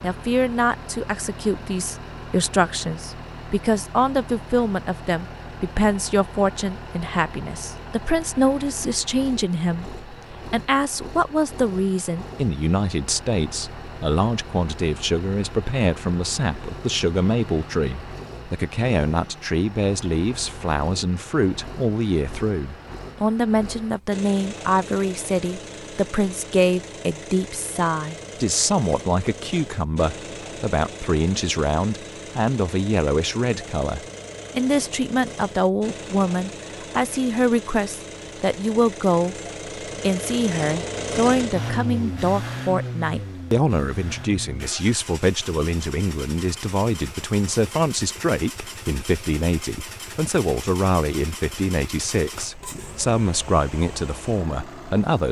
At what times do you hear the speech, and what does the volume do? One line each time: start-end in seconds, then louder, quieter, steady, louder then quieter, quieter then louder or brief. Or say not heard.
0.0-39.4 steady
40.0-55.2 steady.